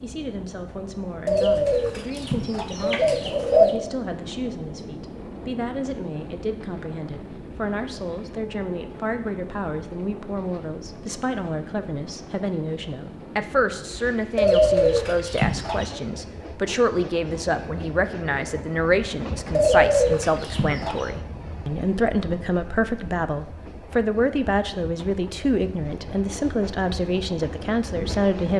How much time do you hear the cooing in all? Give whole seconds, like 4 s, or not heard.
6 s.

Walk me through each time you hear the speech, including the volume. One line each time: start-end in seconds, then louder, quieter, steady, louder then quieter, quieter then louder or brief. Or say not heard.
0.0-28.5 louder.